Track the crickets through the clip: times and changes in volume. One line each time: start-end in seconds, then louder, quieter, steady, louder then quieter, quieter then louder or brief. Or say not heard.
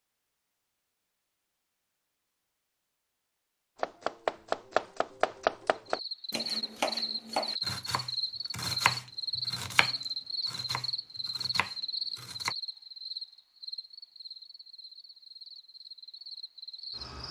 5.8-17.2 quieter.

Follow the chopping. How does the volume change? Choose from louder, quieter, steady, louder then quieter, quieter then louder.
quieter.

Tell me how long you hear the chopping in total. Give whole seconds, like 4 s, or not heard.
9 s.